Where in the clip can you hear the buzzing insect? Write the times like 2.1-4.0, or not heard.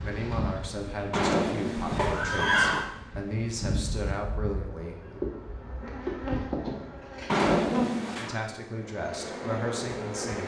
0.0-10.4.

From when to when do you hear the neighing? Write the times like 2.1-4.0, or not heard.
1.1-2.9, 7.3-8.4.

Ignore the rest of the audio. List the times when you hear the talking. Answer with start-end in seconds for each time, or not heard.
0.0-5.2, 8.2-10.4.